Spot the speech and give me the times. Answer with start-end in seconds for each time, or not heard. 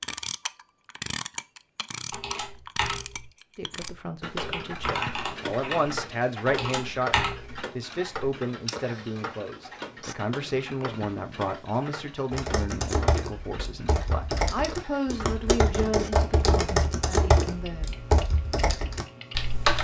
3.5-17.9.